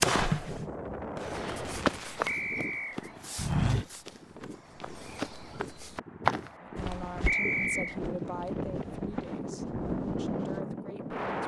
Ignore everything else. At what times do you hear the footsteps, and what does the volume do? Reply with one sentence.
The footsteps can be heard from 1.2 to 10.7 s, getting quieter.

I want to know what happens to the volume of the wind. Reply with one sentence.
The loudness of the wind goes down, then up.